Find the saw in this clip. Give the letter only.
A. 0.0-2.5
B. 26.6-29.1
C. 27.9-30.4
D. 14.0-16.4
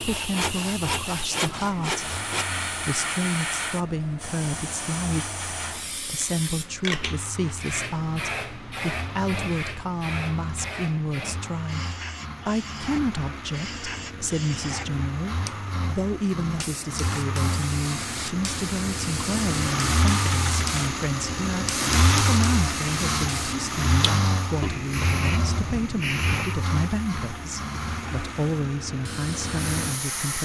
A.